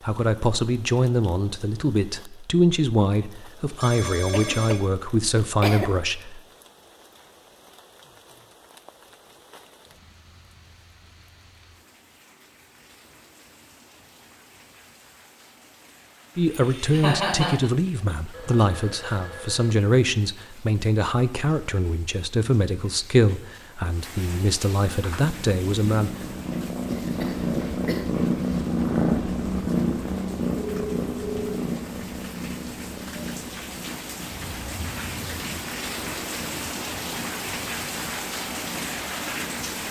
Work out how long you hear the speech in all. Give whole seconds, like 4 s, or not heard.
16 s.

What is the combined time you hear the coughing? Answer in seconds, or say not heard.
4 s.